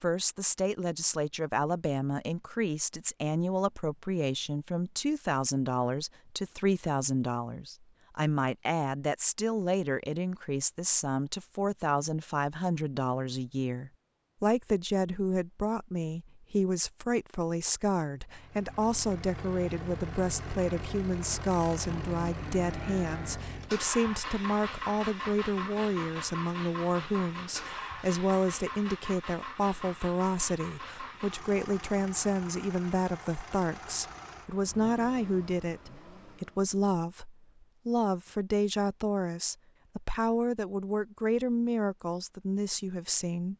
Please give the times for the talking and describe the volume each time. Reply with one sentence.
The talking can be heard from 0.0 to 43.5 s, at a steady volume.